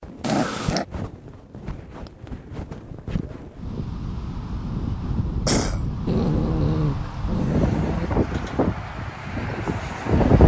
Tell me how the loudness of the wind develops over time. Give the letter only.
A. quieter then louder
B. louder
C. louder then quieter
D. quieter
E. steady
B.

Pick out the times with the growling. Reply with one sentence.
The growling can be heard from 0.2 to 0.8 s and from 6.0 to 8.1 s.